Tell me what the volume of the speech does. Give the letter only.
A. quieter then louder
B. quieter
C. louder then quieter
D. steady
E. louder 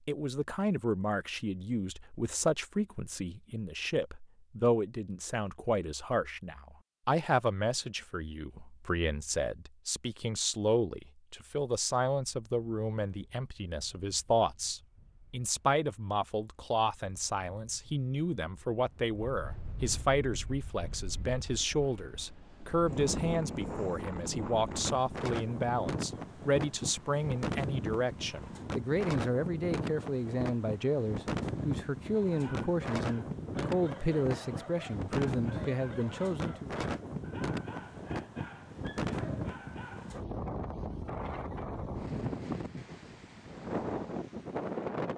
D.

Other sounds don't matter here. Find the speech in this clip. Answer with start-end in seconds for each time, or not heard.
0.1-36.8.